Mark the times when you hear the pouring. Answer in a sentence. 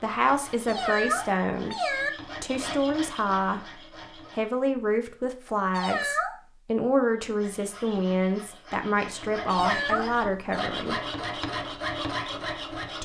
You can't hear the pouring here.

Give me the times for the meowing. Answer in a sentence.
The meowing can be heard from 0.7 to 2.1 s, from 5.7 to 6.3 s and from 9.4 to 10.7 s.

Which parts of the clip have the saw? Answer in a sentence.
The saw can be heard from 0.0 to 4.7 s and from 7.0 to 12.9 s.